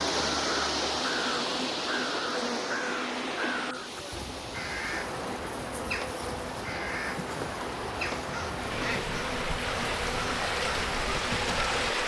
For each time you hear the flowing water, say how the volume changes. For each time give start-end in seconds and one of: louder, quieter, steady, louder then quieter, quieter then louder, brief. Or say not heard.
0.0-12.0 quieter then louder.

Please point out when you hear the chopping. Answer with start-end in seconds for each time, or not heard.
not heard.